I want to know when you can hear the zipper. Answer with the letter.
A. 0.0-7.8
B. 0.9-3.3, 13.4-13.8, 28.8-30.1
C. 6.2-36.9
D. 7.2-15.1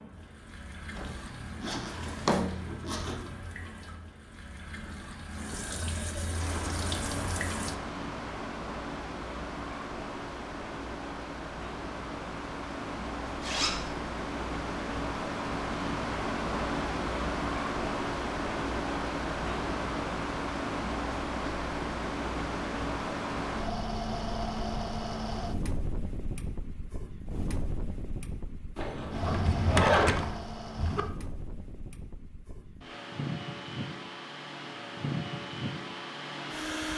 B.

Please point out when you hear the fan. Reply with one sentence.
You can hear the fan from 6.2 to 36.9 s.